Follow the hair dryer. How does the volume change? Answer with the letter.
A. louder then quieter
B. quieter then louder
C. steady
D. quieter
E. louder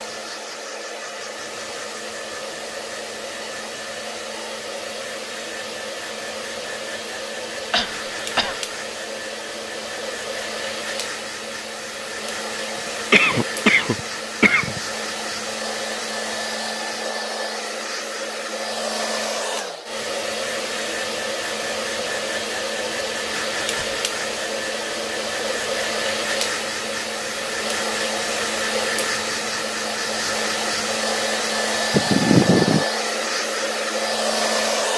E.